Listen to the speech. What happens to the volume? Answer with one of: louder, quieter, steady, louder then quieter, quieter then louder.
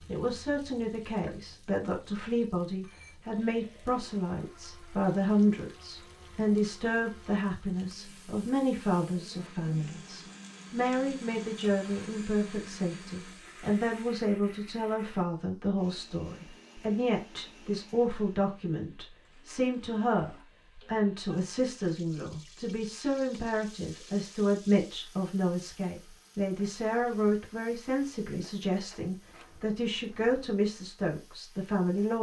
steady.